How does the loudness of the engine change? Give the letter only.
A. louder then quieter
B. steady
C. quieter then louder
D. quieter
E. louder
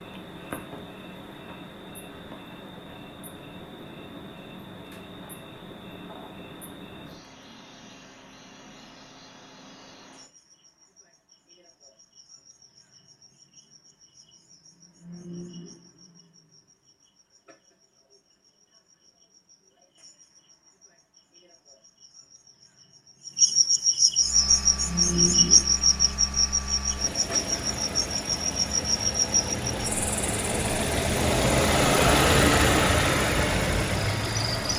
E.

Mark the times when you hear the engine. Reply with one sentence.
The engine can be heard from 24.1 to 34.7 s.